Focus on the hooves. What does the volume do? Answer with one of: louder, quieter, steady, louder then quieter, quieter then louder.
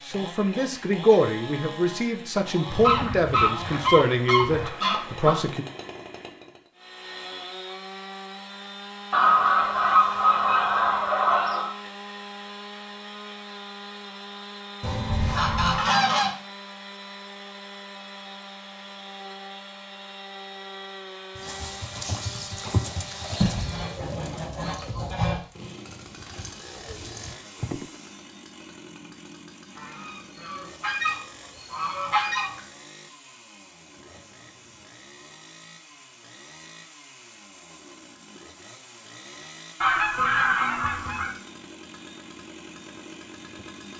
quieter then louder.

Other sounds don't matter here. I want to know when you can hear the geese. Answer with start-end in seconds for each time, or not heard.
2.7-5.5, 9.1-11.7, 14.8-16.4, 23.4-25.4, 29.8-32.6, 39.8-41.3.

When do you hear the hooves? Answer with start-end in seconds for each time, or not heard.
21.4-27.9.